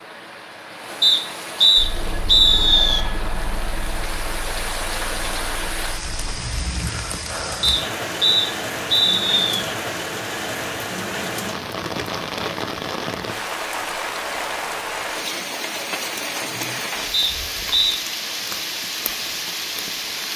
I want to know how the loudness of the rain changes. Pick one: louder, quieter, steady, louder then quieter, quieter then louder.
louder.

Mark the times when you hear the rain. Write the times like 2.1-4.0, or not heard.
0.0-20.3.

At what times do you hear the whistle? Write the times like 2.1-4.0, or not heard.
1.0-3.0, 7.6-9.7, 17.1-17.9.